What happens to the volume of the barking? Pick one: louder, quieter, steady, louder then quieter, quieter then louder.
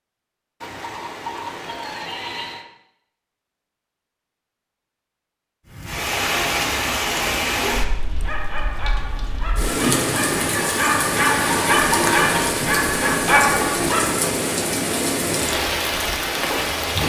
louder.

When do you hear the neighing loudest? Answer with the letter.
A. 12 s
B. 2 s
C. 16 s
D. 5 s
A.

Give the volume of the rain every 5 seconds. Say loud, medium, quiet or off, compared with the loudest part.
off, loud, loud, loud.